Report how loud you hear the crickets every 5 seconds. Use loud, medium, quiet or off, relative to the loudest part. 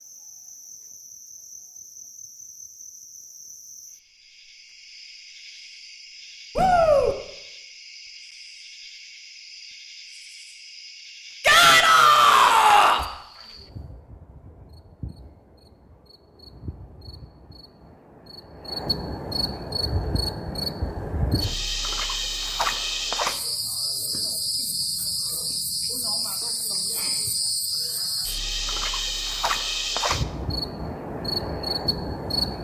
quiet, quiet, quiet, medium, loud, loud, loud.